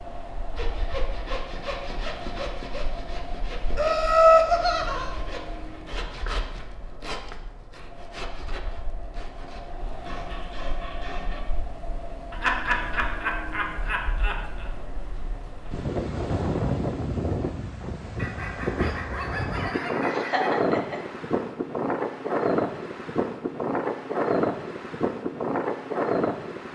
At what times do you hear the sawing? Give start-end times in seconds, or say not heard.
0.6-11.4.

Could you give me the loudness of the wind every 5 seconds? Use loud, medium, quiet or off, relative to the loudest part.
quiet, quiet, quiet, loud, loud, loud.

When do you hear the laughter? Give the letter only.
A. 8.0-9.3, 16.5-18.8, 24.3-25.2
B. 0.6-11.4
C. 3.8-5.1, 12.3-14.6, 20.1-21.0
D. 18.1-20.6
C.